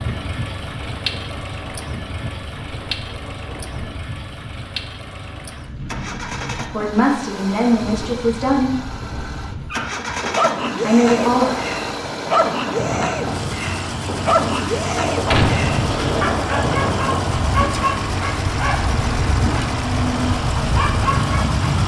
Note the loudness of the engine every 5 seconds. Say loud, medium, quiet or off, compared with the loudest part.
medium, medium, loud, loud, loud.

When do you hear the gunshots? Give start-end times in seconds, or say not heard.
15.2-16.4.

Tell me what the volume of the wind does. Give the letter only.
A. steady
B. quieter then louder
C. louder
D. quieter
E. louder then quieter
C.